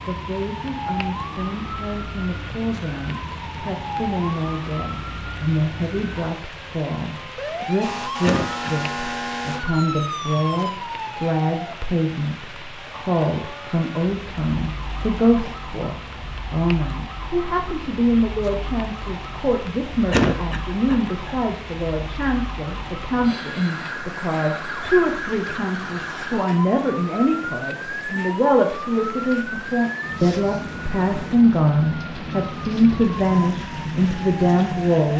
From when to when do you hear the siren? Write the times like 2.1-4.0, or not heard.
0.0-35.1.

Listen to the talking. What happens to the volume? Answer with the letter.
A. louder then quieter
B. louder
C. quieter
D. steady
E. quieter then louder
B.